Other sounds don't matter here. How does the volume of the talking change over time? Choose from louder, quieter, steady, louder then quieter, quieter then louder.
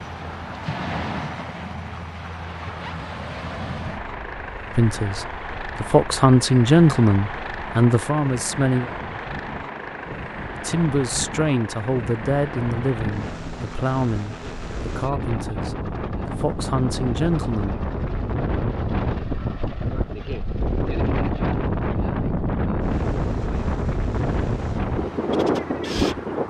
quieter.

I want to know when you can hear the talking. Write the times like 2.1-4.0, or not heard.
4.8-8.9, 10.5-17.8.